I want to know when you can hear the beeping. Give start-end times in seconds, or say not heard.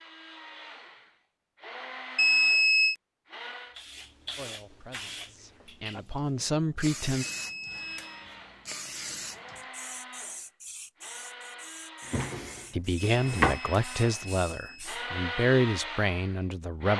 2.1-3.0, 7.2-8.2, 12.9-14.8.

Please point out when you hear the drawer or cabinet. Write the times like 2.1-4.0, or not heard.
12.0-13.6.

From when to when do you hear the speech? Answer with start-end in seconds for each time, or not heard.
4.3-7.2, 12.7-16.9.